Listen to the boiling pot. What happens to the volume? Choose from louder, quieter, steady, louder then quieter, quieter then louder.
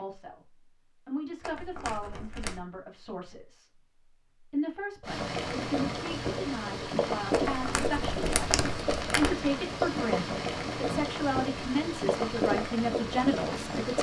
steady.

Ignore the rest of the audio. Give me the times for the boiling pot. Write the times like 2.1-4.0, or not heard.
5.0-13.9.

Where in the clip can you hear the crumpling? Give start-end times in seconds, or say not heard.
1.4-2.6, 7.3-9.3.